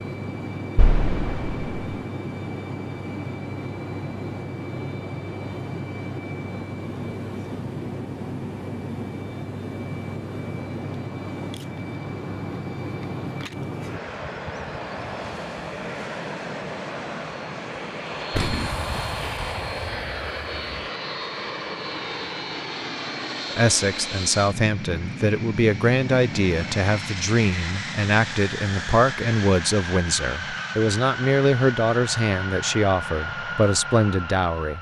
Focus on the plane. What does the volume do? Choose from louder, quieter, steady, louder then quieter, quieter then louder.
steady.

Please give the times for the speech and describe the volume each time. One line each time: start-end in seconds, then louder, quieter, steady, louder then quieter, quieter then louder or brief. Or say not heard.
23.5-34.7 steady.